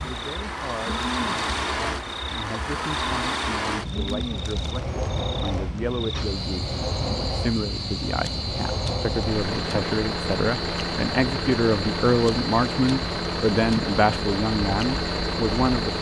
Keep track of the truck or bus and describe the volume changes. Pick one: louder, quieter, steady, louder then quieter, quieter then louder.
steady.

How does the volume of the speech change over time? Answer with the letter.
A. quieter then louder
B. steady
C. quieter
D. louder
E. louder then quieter
D.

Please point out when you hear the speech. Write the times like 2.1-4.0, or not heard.
0.0-15.9.